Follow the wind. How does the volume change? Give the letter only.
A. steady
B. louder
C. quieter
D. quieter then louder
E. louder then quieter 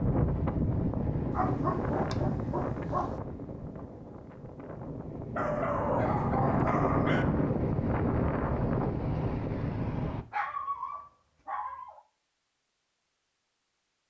D.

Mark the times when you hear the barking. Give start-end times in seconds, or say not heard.
1.3-3.2, 5.3-7.2, 10.3-12.0.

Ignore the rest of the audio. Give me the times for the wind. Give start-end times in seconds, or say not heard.
0.0-10.2.